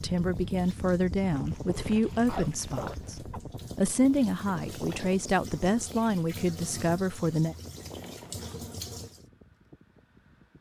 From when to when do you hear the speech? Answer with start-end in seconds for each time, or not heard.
0.0-7.5.